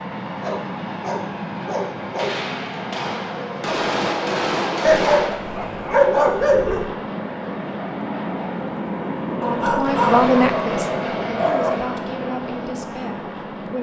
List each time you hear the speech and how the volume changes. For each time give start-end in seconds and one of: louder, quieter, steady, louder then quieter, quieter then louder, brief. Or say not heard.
9.4-13.7 quieter.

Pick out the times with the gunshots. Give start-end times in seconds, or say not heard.
2.1-5.3.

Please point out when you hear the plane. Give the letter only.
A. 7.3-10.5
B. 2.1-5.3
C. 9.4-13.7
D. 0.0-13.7
D.